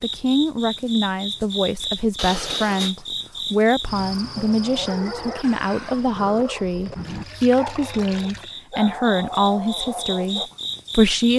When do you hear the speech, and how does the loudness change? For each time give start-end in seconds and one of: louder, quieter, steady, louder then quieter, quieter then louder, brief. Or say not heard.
0.0-11.3 steady.